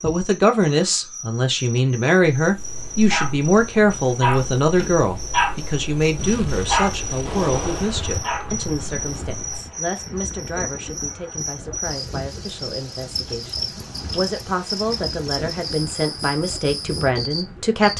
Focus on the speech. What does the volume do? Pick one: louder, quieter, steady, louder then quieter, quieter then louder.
quieter then louder.